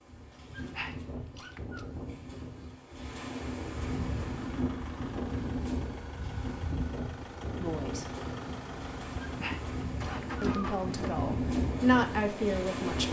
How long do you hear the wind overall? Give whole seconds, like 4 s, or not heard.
13 s.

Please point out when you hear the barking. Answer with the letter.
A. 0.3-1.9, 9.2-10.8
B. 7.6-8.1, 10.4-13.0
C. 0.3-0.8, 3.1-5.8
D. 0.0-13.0
A.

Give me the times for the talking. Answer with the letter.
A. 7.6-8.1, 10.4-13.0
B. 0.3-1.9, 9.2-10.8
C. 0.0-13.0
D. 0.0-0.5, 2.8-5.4
A.